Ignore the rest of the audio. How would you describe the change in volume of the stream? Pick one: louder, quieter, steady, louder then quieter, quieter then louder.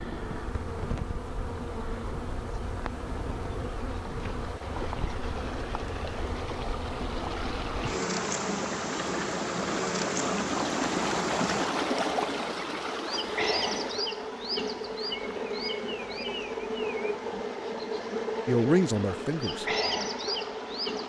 louder then quieter.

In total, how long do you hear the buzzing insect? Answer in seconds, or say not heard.
21 s.